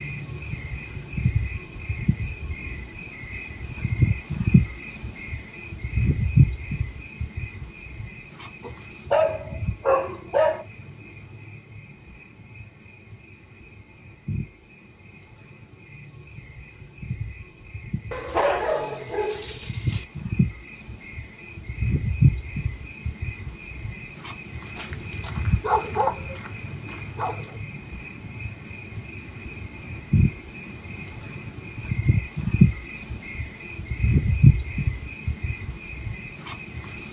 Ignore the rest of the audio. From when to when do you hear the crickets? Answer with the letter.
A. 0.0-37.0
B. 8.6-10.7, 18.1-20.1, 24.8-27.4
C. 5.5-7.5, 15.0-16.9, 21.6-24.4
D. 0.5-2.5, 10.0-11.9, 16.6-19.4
A.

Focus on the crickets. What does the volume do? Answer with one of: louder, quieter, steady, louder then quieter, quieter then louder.
quieter then louder.